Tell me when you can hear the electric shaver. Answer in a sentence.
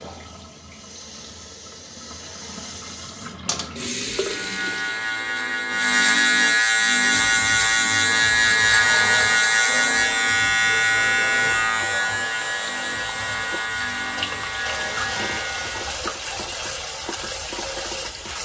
You can hear the electric shaver from 4.1 to 15.9 s.